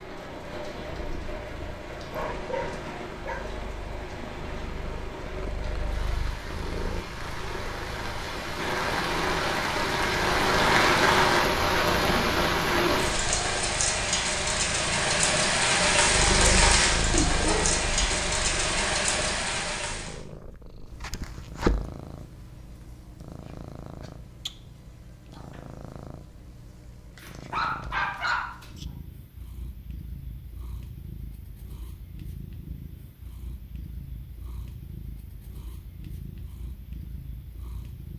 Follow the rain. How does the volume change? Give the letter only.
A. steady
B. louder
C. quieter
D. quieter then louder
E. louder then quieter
B.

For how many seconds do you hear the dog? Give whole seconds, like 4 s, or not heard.
4 s.